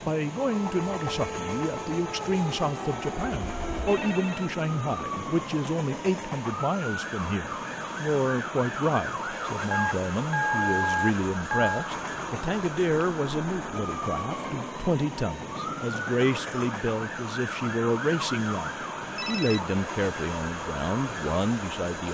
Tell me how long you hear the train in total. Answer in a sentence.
The train can be heard for 22 seconds in total.